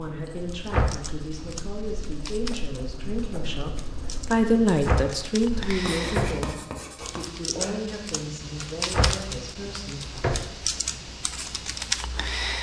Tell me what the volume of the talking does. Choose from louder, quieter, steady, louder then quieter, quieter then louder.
louder then quieter.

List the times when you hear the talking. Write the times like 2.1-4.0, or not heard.
0.0-10.0.